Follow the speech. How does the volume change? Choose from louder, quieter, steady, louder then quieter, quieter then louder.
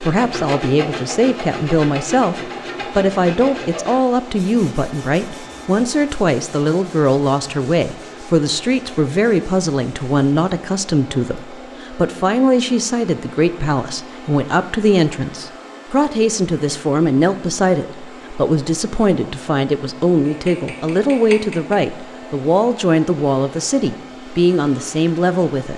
steady.